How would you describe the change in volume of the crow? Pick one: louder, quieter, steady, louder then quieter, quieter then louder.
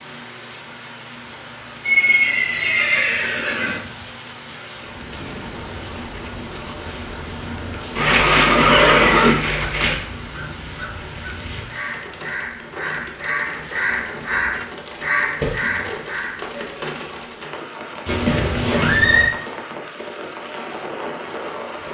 louder.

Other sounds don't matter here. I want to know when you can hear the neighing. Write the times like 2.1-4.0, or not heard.
1.8-3.8, 8.0-9.9, 18.1-19.3.